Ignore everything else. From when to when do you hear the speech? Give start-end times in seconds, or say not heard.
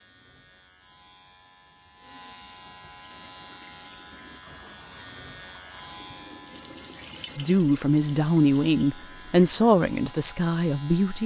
7.3-11.2.